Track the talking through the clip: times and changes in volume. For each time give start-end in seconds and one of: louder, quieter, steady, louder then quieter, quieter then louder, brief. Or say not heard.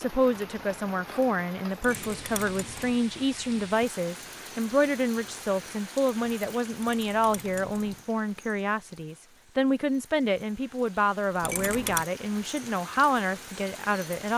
0.0-14.3 steady.